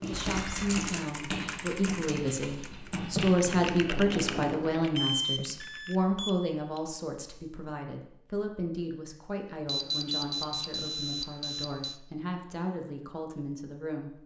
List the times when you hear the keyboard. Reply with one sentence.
The keyboard can be heard from 0.0 to 6.0 s.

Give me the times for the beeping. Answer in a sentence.
You can hear the beeping from 0.3 to 0.8 s, from 5.0 to 6.8 s and from 9.7 to 12.0 s.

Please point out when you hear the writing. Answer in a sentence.
You can hear the writing from 0.0 to 4.8 s.